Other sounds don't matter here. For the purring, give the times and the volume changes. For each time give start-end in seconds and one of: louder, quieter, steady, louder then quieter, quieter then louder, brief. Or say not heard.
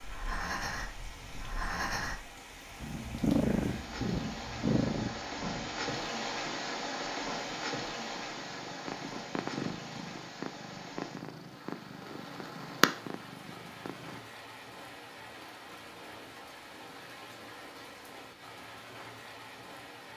2.8-14.2 quieter then louder.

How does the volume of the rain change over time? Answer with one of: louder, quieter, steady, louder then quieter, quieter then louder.
louder then quieter.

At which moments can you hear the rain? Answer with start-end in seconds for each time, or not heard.
0.0-20.1.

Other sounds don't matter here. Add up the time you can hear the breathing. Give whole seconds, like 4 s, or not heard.
2 s.